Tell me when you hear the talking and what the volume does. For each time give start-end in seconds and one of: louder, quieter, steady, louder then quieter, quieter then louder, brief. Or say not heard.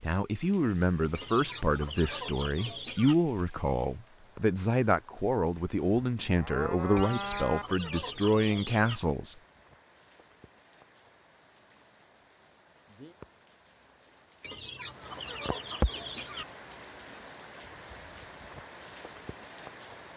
0.0-9.3 steady.